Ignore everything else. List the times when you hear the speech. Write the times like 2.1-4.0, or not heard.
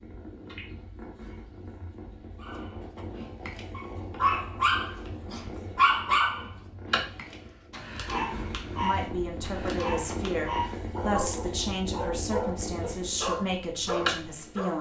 8.8-14.7.